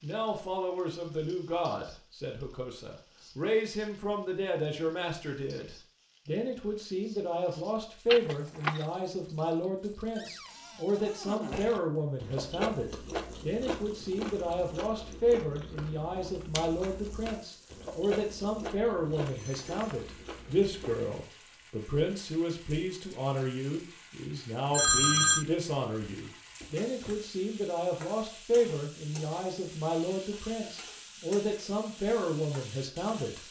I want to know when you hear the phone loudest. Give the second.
25 s.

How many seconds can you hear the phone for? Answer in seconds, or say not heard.
2 s.